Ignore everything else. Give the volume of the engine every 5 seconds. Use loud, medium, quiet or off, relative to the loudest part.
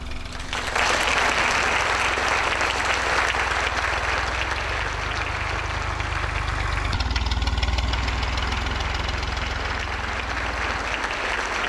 medium, loud, medium.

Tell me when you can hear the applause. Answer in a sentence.
The applause can be heard from 0.1 to 11.6 s.